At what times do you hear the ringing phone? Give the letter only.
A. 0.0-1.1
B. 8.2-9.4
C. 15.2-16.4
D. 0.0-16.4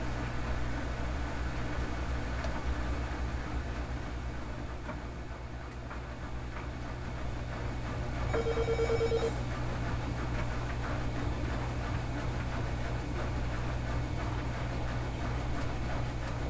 B.